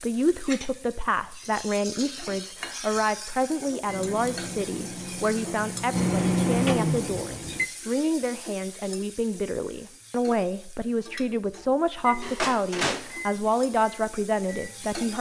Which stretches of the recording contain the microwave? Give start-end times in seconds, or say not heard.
3.9-7.7, 12.1-14.9.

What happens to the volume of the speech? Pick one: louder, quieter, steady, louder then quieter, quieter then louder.
steady.